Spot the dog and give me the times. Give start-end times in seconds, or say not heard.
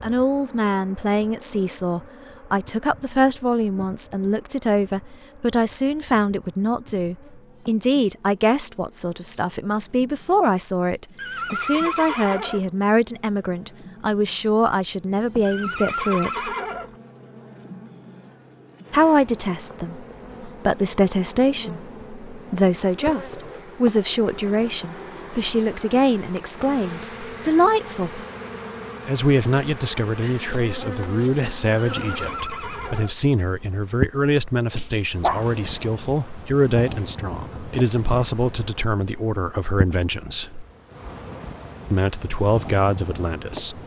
34.8-35.7.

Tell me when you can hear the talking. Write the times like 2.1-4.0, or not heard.
0.0-16.5, 18.9-28.2, 29.1-40.6, 41.9-43.8.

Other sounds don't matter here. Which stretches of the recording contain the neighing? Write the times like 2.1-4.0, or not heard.
11.2-12.7, 15.4-16.9, 31.8-33.1.